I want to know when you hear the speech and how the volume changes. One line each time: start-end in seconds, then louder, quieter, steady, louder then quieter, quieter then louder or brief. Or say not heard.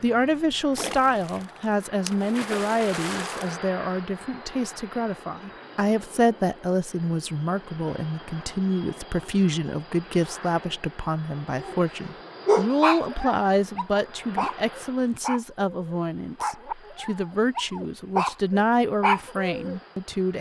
0.0-20.3 steady.